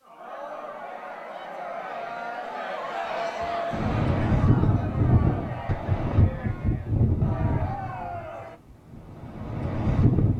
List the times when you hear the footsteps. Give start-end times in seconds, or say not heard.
not heard.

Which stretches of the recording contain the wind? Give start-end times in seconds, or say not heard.
3.7-10.3.